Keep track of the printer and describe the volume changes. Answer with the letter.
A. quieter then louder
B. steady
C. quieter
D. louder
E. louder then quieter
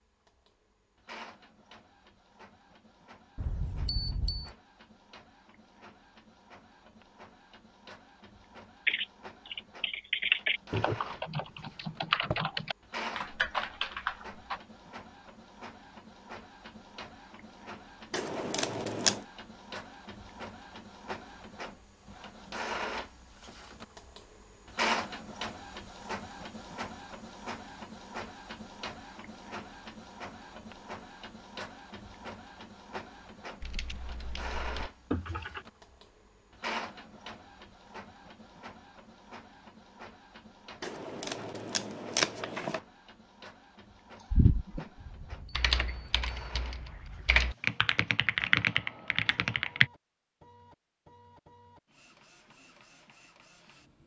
E.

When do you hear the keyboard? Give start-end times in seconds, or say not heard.
8.8-14.6, 33.6-35.6, 44.2-49.9.